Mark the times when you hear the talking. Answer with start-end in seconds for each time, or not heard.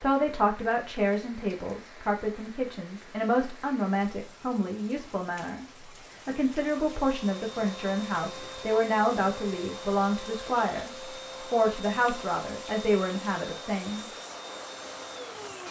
0.0-5.7, 6.2-10.9, 11.5-14.1.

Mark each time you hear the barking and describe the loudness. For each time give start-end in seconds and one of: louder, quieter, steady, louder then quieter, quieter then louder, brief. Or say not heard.
not heard.